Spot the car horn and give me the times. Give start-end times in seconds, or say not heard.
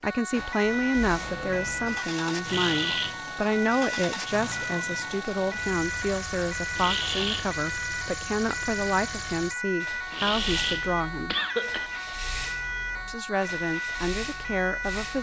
not heard.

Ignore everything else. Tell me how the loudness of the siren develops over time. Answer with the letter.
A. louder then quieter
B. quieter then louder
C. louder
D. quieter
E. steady
E.